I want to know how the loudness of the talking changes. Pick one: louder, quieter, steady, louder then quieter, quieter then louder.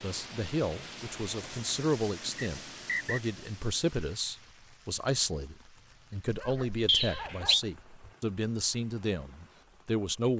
steady.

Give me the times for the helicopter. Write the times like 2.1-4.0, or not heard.
not heard.